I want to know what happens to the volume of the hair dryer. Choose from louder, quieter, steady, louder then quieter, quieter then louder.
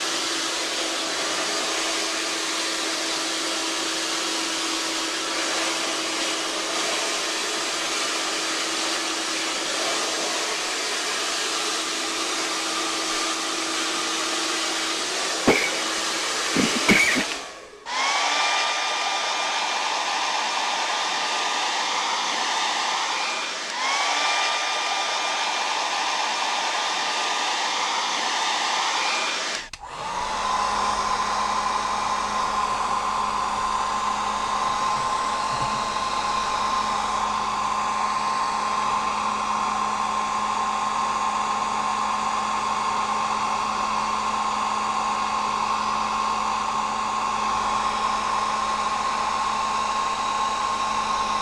steady.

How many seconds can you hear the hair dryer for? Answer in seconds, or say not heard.
51 s.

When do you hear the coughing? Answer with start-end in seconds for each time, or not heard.
15.4-17.2.